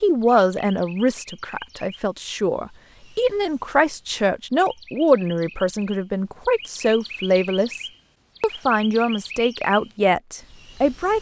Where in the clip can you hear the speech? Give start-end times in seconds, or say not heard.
0.0-11.1.